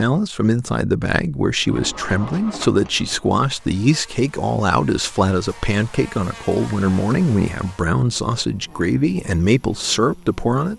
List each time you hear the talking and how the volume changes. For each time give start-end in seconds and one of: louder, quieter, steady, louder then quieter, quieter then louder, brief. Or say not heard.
0.0-10.7 steady.